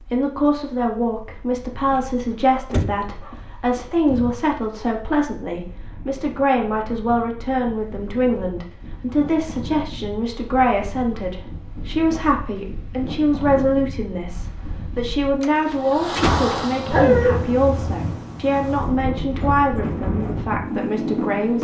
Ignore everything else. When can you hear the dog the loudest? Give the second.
17 s.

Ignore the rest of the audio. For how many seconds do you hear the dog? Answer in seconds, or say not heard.
3 s.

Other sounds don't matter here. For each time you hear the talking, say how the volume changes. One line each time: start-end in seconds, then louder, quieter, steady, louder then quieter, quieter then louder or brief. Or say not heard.
0.0-21.5 steady.